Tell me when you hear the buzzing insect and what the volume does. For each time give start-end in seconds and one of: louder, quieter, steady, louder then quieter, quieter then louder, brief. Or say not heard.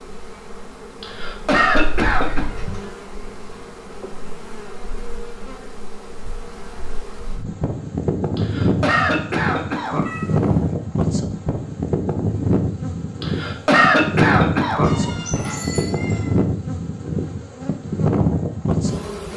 0.0-19.3 louder.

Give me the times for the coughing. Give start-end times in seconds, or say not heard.
1.0-2.5, 8.3-10.1, 13.2-14.9.